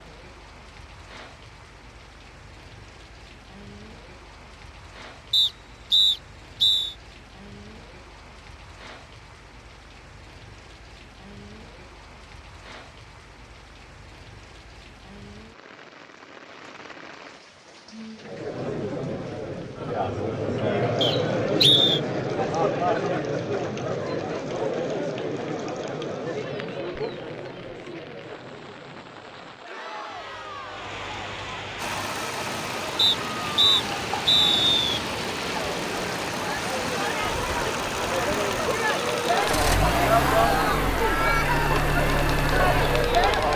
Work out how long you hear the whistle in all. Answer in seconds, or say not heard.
5 s.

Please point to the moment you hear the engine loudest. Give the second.
40 s.